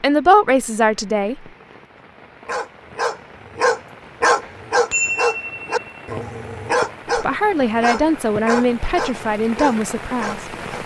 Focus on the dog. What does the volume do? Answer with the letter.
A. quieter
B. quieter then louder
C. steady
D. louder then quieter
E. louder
A.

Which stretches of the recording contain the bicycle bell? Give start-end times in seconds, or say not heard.
4.4-6.0.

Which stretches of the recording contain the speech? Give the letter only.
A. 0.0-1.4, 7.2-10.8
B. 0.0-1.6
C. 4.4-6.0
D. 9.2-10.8
A.